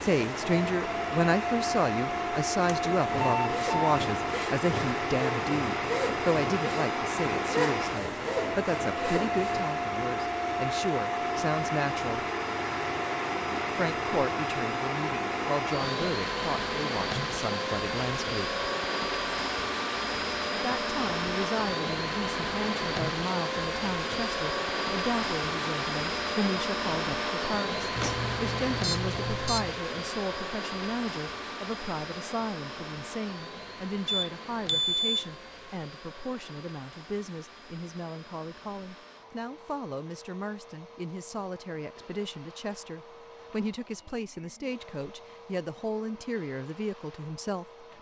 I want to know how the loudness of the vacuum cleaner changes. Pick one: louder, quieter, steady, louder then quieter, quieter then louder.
quieter.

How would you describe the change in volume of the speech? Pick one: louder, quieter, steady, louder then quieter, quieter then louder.
quieter.